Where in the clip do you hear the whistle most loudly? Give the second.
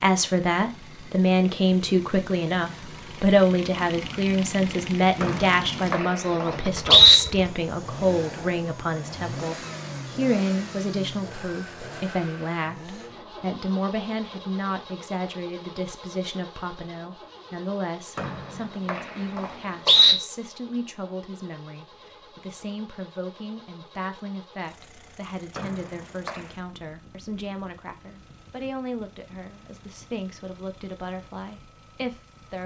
7 s.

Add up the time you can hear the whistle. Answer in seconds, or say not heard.
5 s.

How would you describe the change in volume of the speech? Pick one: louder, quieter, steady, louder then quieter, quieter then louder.
quieter.